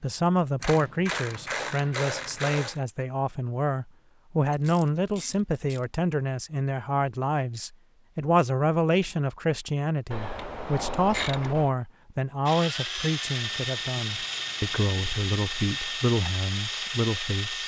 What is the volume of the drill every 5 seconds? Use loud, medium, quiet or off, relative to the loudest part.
off, off, loud, loud.